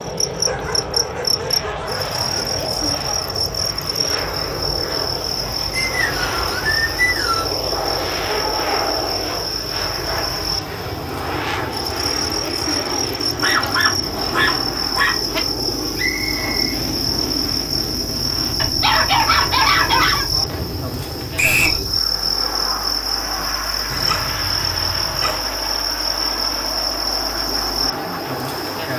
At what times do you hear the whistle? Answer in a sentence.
The whistle can be heard from 5.7 to 7.5 s, from 15.9 to 16.8 s and from 21.4 to 21.8 s.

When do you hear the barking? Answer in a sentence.
You can hear the barking from 0.4 to 2.1 s, from 7.7 to 9.4 s, from 13.4 to 15.4 s, from 18.6 to 20.3 s and from 23.9 to 25.4 s.